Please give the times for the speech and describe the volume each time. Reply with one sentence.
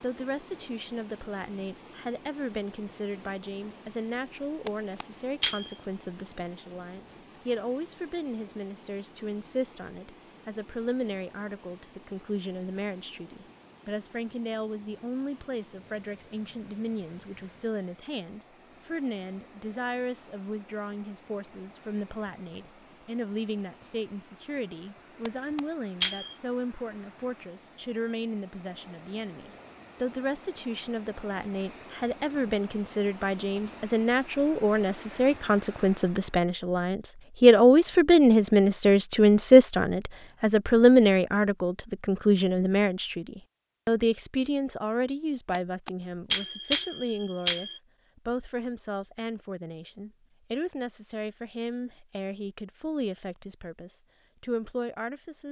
The speech can be heard from 0.0 to 55.4 s, getting louder then quieter.